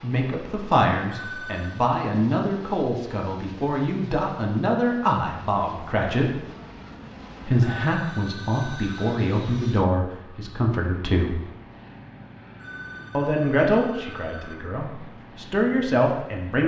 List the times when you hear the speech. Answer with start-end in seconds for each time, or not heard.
0.0-6.3, 7.5-11.4, 13.1-16.6.